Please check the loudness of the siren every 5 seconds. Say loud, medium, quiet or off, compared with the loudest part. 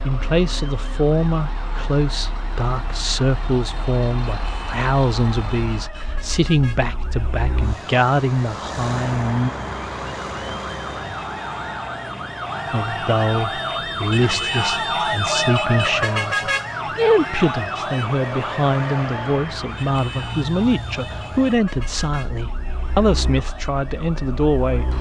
quiet, quiet, loud, loud, quiet.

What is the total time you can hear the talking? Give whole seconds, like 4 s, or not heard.
22 s.